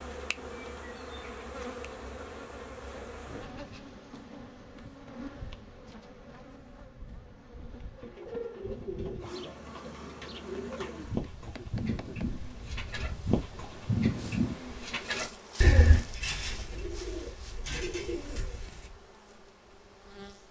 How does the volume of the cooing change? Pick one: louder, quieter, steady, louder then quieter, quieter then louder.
louder then quieter.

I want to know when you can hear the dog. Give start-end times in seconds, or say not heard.
not heard.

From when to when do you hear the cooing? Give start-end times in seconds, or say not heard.
7.9-18.9.